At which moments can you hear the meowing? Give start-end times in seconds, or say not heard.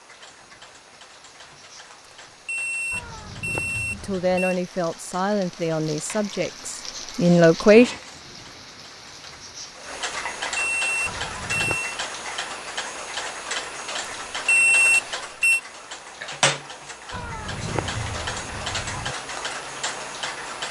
2.9-4.4, 11.1-11.8, 17.1-19.1.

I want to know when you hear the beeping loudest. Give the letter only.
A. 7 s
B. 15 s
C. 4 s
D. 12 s
B.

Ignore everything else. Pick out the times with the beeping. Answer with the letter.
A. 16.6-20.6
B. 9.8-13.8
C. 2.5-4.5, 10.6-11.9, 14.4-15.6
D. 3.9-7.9
C.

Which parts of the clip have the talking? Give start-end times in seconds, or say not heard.
3.9-7.9.